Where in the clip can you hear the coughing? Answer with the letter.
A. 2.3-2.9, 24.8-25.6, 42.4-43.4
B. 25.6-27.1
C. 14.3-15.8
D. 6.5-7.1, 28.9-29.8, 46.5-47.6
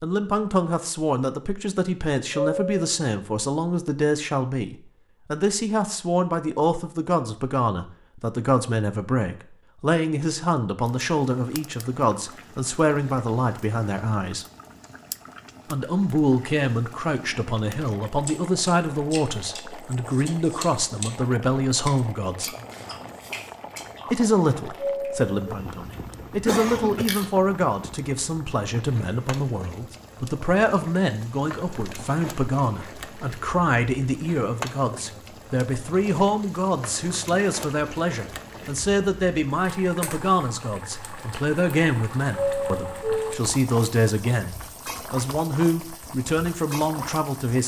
B.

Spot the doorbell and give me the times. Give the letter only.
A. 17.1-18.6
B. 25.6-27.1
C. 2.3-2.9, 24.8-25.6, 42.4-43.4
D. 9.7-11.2
C.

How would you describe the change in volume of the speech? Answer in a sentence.
The loudness of the speech stays about the same.